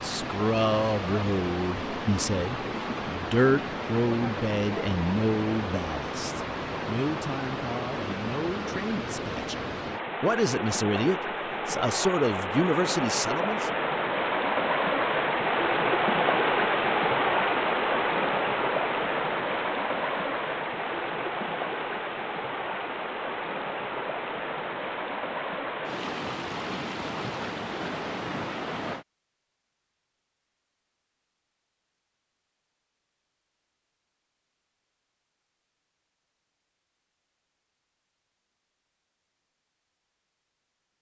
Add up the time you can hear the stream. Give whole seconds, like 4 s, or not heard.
29 s.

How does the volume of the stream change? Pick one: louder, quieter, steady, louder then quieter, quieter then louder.
louder then quieter.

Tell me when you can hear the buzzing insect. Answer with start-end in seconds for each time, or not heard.
not heard.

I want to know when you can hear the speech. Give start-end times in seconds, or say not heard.
0.0-13.7.